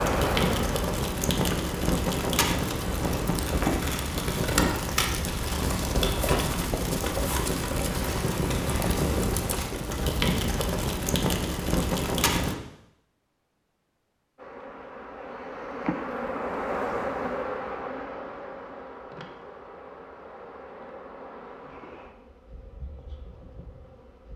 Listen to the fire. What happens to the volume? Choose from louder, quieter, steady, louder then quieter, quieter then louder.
steady.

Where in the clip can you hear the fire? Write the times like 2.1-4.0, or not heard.
0.0-12.6.